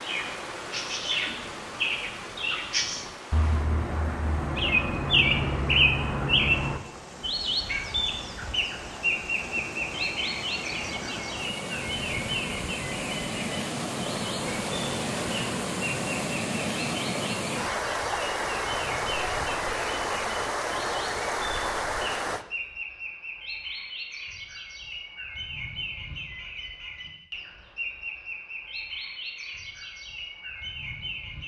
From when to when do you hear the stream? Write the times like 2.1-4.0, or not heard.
0.0-22.4.